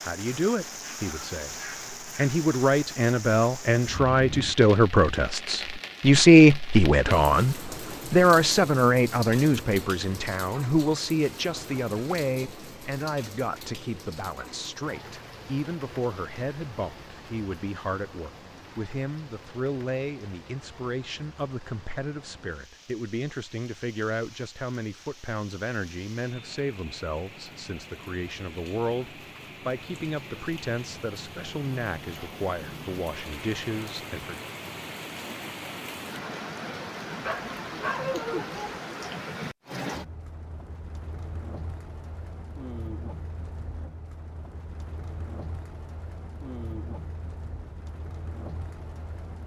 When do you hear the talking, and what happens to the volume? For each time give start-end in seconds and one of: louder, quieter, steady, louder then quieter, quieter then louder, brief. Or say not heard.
0.0-34.5 quieter.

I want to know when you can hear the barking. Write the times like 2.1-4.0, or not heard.
37.2-38.8.